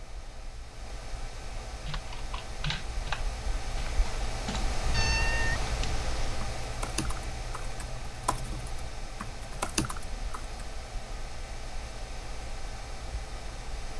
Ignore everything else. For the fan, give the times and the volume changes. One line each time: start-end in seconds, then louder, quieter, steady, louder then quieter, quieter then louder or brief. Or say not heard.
0.0-13.9 louder then quieter.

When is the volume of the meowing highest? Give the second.
5 s.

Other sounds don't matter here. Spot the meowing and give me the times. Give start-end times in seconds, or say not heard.
4.9-6.4.